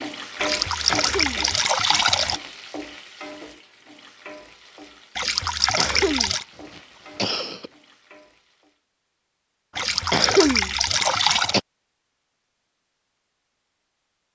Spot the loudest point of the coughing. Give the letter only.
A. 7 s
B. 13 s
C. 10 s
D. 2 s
C.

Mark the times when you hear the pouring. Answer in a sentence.
You can hear the pouring from 0.3 to 2.4 s, from 5.2 to 6.5 s and from 9.8 to 11.6 s.